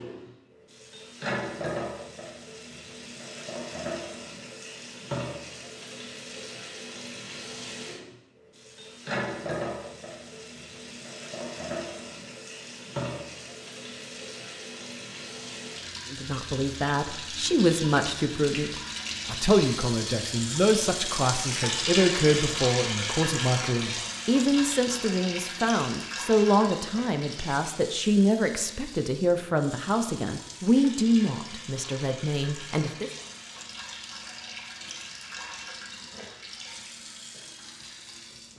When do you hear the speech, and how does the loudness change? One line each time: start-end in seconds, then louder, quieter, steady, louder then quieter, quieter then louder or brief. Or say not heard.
16.1-33.1 steady.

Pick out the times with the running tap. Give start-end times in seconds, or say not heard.
0.0-38.5.